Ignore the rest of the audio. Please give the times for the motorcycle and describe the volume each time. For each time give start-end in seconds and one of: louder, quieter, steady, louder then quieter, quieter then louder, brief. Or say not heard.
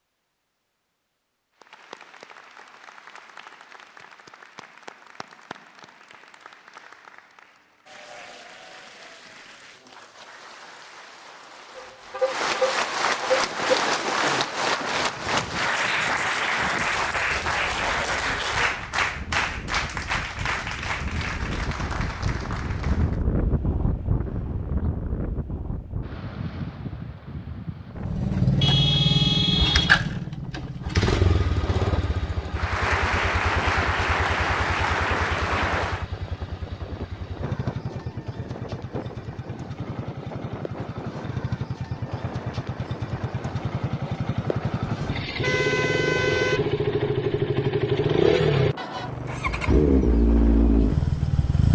27.9-51.6 quieter then louder.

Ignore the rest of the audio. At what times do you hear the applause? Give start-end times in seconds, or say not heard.
1.6-23.2, 32.5-36.0.